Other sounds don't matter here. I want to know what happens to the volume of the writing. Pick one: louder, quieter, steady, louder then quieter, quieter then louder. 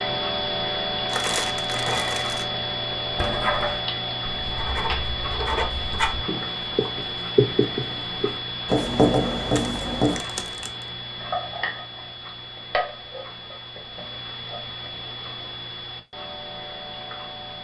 louder.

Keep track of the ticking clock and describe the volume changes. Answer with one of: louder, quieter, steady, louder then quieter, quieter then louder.
quieter.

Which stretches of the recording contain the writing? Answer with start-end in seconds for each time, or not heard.
3.0-10.2.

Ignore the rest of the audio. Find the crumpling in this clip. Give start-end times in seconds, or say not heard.
1.1-2.5, 9.5-10.8.